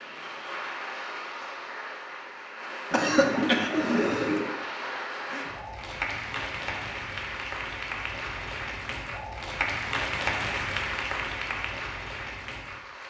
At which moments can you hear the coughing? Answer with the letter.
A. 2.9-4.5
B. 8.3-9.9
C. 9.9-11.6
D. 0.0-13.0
A.